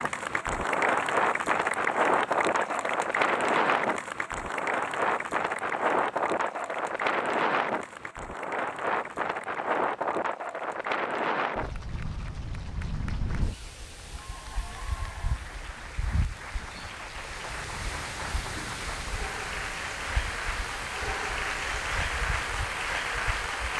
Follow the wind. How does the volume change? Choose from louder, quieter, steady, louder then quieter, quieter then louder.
quieter.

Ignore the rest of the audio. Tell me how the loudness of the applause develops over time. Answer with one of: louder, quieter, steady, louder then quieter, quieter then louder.
quieter then louder.